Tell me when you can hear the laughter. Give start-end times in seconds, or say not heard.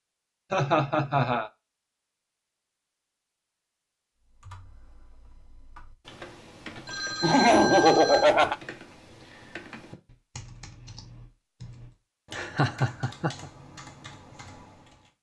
0.5-1.5, 7.2-8.6, 12.3-13.4.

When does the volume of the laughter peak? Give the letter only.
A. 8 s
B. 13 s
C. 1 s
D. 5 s
A.